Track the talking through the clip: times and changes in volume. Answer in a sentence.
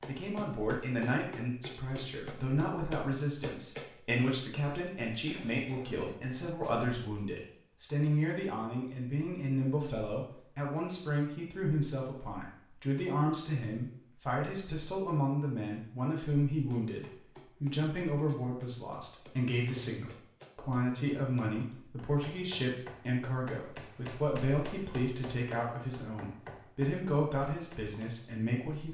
You can hear the talking from 0.1 to 28.9 s, at a steady volume.